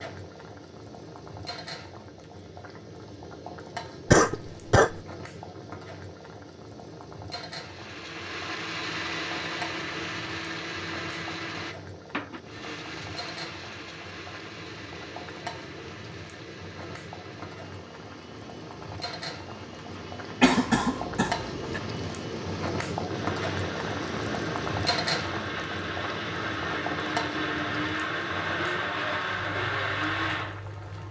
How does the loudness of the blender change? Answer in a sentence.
The loudness of the blender goes down, then up.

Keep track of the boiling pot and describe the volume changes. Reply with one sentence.
The loudness of the boiling pot goes up.